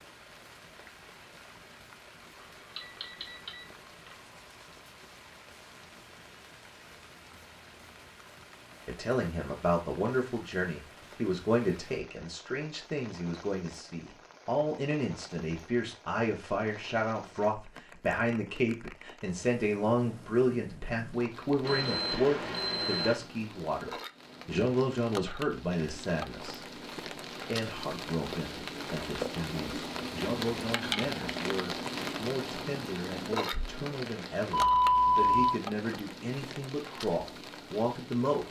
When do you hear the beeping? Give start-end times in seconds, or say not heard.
2.8-3.6, 21.6-23.1, 34.5-35.5.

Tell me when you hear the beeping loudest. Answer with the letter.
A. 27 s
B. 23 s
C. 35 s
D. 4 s
C.